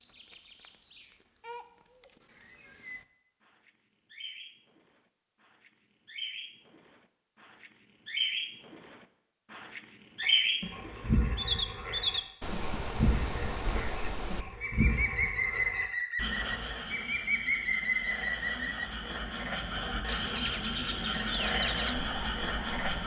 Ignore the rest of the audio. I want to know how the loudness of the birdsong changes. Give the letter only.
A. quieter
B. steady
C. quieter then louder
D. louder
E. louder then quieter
D.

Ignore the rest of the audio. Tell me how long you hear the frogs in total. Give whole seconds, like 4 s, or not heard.
13 s.